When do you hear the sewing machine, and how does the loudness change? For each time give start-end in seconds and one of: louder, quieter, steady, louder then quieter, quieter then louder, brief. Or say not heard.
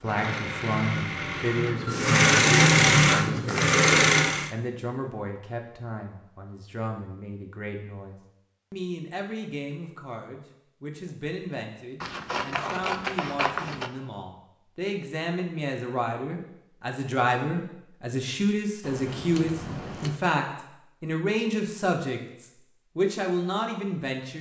0.0-4.5 louder.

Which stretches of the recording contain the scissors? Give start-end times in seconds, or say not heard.
3.1-3.8, 12.0-13.9, 18.8-20.2.